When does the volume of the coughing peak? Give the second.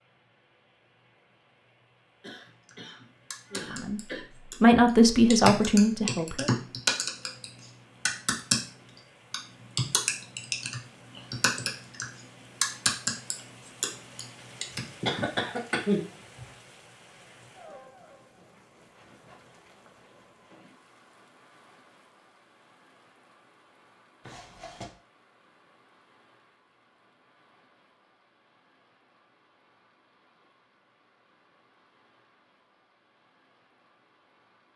16 s.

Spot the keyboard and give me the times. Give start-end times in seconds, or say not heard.
2.6-8.6, 9.3-14.8.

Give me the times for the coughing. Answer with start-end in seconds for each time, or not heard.
2.2-4.2, 14.7-16.4, 24.2-24.9.